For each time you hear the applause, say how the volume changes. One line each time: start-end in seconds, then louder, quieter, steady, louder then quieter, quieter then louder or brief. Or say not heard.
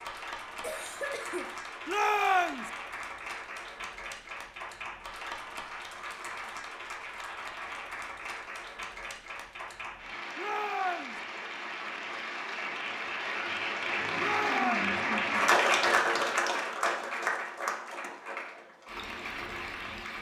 0.0-20.1 louder.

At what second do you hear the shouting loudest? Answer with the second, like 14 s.
2 s.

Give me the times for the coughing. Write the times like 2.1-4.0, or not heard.
0.6-1.5.